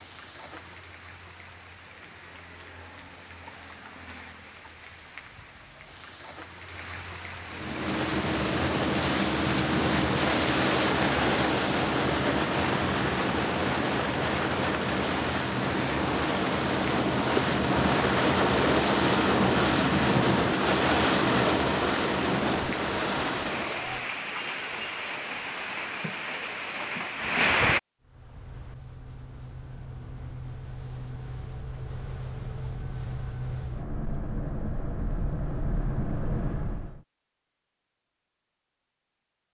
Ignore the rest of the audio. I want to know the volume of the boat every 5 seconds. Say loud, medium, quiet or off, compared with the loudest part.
off, loud, loud, loud, loud, quiet, quiet, medium.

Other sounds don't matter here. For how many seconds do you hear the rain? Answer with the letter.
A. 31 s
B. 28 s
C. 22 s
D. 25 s
B.